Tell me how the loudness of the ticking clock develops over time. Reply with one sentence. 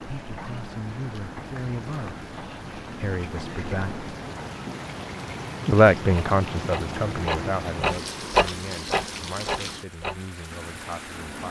The volume of the ticking clock goes up, then down.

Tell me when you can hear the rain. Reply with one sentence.
The rain can be heard from 0.0 to 11.4 s.